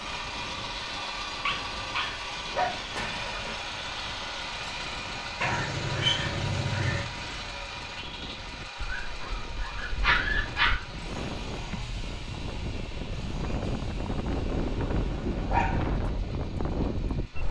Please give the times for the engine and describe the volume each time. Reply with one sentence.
The engine can be heard from 0.0 to 17.4 s, getting quieter.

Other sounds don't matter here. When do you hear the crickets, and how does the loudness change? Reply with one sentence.
You can't hear the crickets here.